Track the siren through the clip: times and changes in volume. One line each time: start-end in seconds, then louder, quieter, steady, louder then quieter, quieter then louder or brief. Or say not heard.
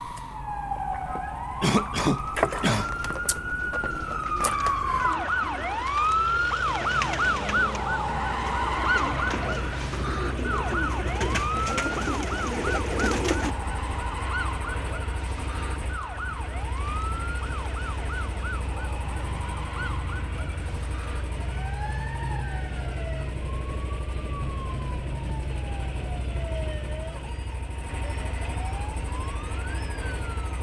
0.0-30.5 quieter.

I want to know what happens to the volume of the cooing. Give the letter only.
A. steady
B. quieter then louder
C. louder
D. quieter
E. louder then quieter
C.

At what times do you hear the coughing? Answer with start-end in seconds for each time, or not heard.
1.6-2.9.